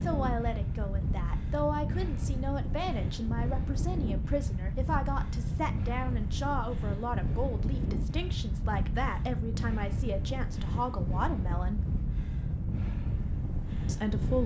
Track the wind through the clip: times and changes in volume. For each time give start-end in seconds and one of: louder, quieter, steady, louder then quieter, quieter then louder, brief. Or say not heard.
0.0-14.4 steady.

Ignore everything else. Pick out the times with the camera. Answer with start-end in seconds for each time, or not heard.
not heard.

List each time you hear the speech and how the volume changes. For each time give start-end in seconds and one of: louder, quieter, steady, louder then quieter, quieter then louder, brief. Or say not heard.
0.0-11.9 steady
13.8-14.4 brief.